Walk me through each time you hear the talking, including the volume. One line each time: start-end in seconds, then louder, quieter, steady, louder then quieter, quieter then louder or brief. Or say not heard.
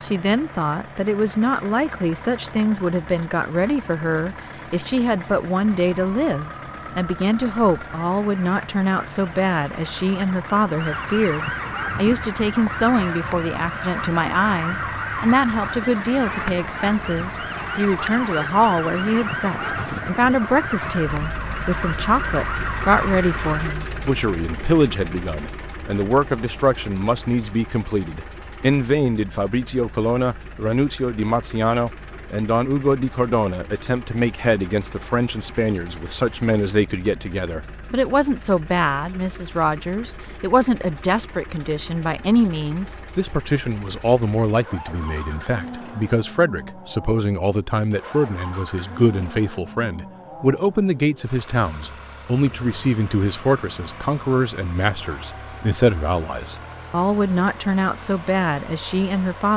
0.0-59.5 steady.